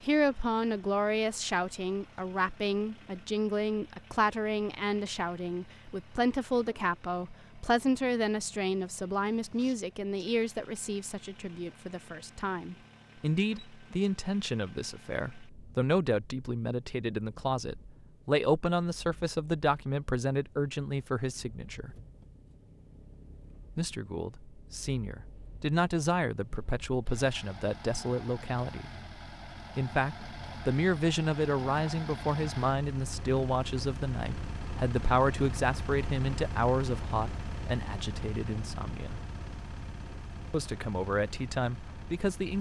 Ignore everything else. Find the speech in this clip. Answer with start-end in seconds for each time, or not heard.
0.0-21.9, 23.8-28.9, 29.8-39.2, 40.5-42.5.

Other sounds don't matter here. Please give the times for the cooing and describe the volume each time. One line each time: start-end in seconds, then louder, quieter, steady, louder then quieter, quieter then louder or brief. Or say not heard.
not heard.